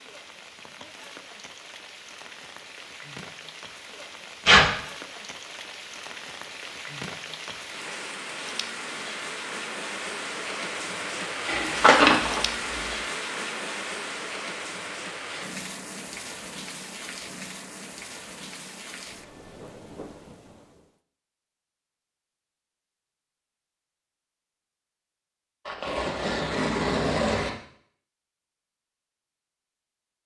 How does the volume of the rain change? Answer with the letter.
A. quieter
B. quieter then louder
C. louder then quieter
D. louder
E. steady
C.